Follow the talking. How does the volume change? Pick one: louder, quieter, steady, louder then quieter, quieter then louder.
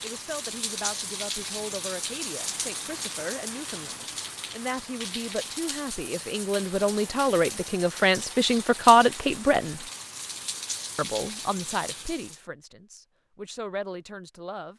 louder then quieter.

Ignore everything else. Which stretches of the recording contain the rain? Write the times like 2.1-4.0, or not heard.
0.0-12.4.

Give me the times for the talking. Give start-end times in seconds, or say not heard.
0.0-9.8, 10.9-14.7.